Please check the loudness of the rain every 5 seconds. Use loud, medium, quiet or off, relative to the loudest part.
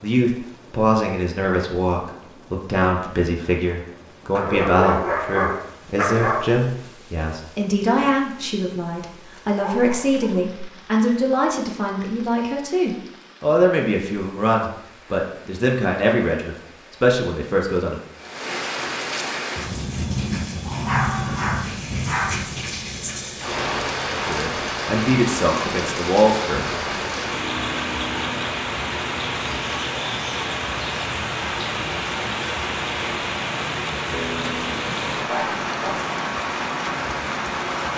quiet, quiet, quiet, medium, loud, loud, loud, loud.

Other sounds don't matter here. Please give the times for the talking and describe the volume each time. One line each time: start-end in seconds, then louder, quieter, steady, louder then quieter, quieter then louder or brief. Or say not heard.
0.0-18.0 steady
24.2-26.6 brief.